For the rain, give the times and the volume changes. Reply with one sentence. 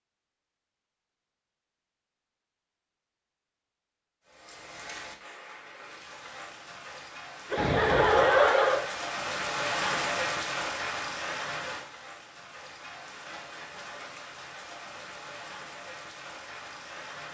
The rain can be heard from 4.2 to 17.3 s, getting louder then quieter.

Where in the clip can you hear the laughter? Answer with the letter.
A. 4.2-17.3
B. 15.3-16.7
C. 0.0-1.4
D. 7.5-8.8
D.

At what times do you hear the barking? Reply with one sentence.
The barking can't be heard in this clip.